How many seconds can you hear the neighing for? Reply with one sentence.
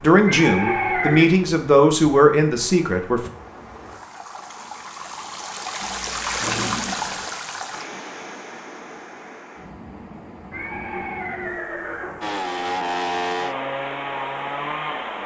You can hear the neighing for 4 seconds altogether.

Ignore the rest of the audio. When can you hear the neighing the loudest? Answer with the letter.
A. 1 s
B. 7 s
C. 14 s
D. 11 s
A.